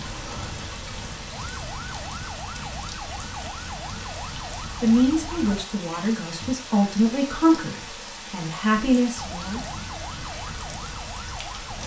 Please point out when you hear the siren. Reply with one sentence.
The siren can be heard from 0.0 to 5.7 s and from 9.2 to 11.8 s.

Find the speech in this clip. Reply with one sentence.
You can hear the speech from 4.8 to 9.6 s.